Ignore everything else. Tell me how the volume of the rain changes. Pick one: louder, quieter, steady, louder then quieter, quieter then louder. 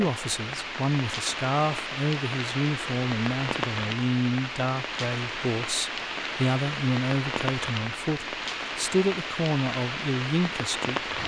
steady.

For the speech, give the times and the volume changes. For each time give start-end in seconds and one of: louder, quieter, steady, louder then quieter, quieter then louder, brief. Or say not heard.
0.0-11.1 steady.